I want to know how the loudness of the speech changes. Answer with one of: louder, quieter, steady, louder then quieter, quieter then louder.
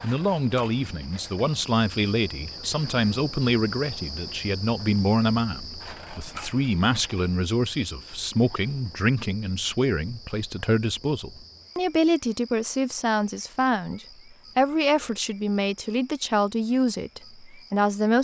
steady.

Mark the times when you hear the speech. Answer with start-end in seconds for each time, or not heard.
0.0-18.2.